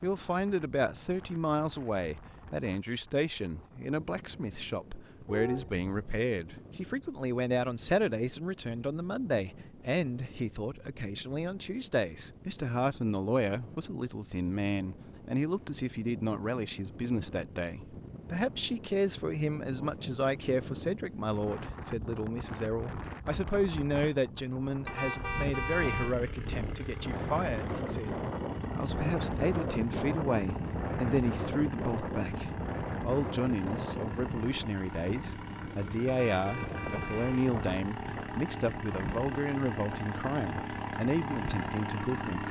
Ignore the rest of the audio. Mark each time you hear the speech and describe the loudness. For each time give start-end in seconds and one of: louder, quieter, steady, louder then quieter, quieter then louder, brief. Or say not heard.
0.0-42.4 steady.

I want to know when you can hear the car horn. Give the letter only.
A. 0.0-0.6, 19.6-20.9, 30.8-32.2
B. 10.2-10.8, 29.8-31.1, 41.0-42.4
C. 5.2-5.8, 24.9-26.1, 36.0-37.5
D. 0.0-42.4
C.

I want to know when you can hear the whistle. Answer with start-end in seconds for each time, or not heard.
not heard.